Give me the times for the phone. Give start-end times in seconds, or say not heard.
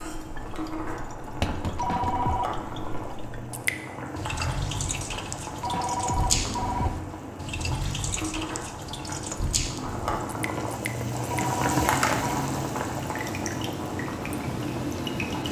1.8-2.5, 5.6-6.9, 11.3-12.4.